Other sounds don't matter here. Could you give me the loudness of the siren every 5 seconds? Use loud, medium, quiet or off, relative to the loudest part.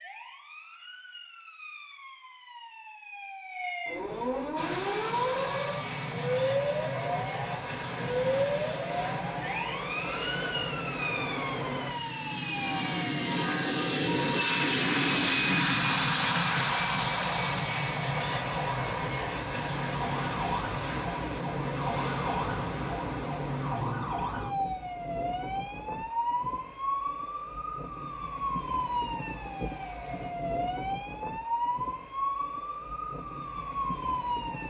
medium, loud, medium, medium, loud, loud, loud.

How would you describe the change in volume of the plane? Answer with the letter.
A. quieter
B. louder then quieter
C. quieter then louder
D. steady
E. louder
B.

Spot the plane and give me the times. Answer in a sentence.
The plane can be heard from 4.5 to 24.1 s.